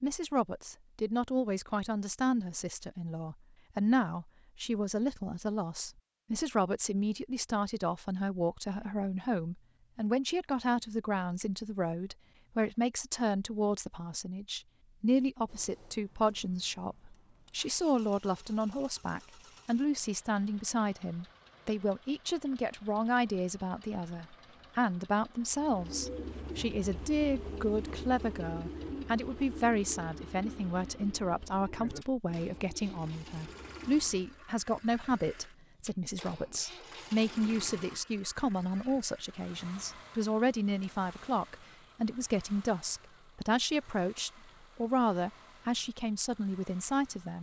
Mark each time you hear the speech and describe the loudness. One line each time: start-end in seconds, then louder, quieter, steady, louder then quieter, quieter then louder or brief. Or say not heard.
0.0-47.3 steady.